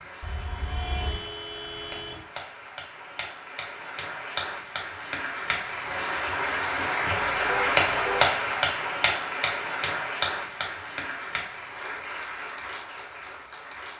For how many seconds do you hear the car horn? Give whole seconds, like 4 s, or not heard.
3 s.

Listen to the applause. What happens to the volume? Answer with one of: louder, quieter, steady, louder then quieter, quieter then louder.
louder then quieter.